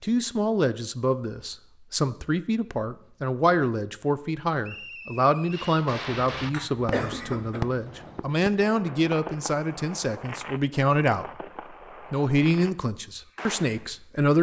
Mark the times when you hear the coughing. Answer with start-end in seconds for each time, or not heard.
6.1-7.6.